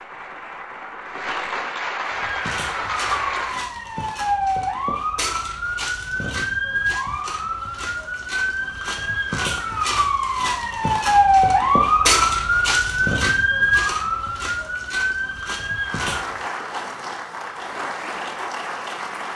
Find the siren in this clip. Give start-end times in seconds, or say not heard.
2.0-16.4.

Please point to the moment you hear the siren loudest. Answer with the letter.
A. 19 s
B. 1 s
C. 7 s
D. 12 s
D.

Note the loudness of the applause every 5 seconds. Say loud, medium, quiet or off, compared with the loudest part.
loud, off, off, loud.